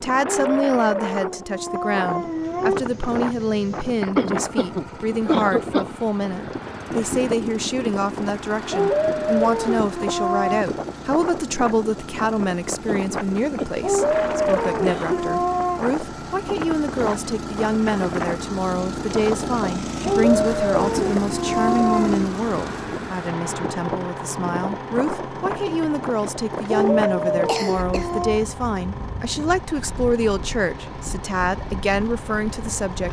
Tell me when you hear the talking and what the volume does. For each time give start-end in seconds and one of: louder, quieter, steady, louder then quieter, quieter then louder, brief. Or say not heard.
0.0-33.0 steady.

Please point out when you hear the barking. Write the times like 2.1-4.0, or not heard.
0.2-2.9, 8.7-10.7, 13.8-15.8, 20.0-22.3, 26.6-28.4.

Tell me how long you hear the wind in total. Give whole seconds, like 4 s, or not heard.
33 s.